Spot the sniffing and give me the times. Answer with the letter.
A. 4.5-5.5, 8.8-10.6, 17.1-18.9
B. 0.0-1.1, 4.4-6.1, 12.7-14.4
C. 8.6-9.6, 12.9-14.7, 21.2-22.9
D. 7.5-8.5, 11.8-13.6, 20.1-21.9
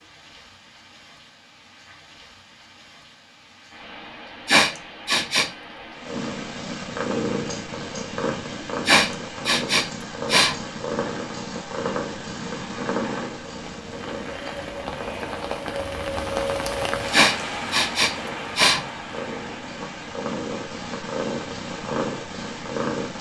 A.